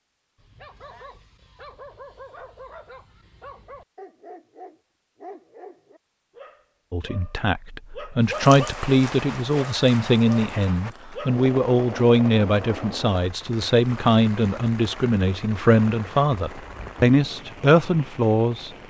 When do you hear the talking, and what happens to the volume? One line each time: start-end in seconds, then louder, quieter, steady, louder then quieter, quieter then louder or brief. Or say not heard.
6.9-18.7 steady.